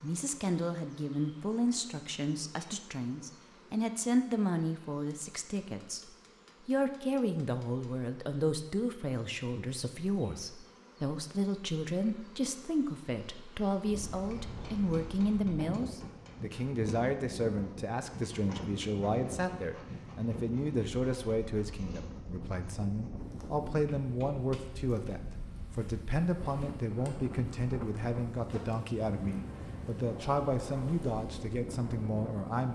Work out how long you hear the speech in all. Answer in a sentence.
You can hear the speech for 33 seconds altogether.